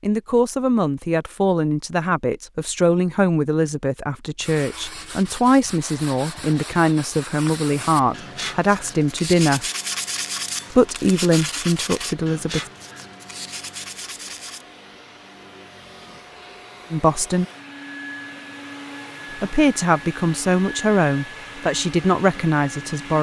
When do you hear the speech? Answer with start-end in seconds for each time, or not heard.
0.0-9.7, 10.7-12.6, 16.9-17.4, 19.4-23.1.